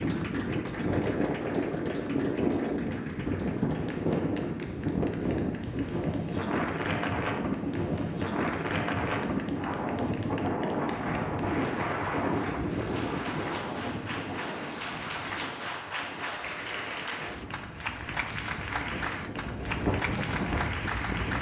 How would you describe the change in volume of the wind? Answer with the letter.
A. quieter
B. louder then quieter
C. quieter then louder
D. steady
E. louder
A.